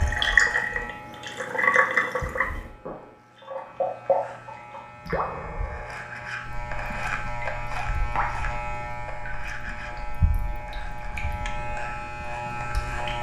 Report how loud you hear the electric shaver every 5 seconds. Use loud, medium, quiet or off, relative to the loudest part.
medium, loud, loud.